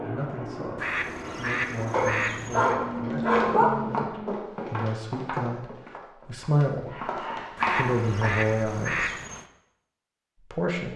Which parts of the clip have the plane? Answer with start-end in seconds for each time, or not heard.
0.0-4.5.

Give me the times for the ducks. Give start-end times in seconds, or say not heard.
0.8-2.8, 7.5-9.4.